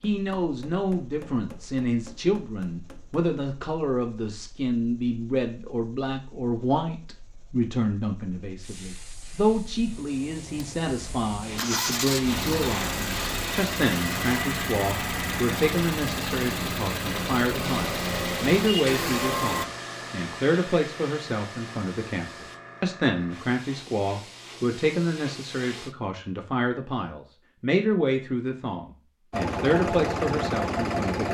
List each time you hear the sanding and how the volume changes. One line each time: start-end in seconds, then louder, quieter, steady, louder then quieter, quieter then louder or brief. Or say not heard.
not heard.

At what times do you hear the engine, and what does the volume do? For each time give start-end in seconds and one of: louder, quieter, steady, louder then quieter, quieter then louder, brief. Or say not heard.
0.0-19.6 louder
29.3-31.2 brief.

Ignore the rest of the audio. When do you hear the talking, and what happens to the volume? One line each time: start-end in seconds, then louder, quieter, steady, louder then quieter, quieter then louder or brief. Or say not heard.
0.0-31.2 steady.